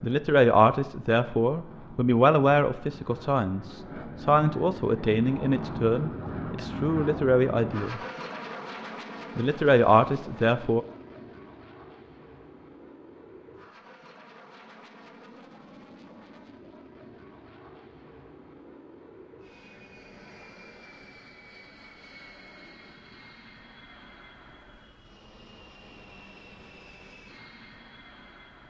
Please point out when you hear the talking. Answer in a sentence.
You can hear the talking from 0.0 to 8.0 s and from 9.3 to 10.8 s.